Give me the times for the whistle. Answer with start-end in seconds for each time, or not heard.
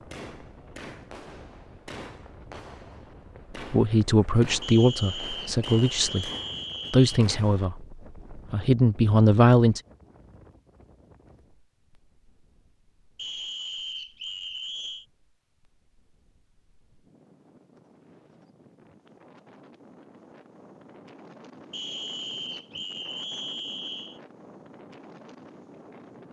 4.6-7.2, 13.2-15.1, 21.7-24.2.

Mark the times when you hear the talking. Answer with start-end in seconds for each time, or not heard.
3.7-6.3, 6.9-9.8.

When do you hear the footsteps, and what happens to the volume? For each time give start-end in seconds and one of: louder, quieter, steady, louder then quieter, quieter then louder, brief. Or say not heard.
not heard.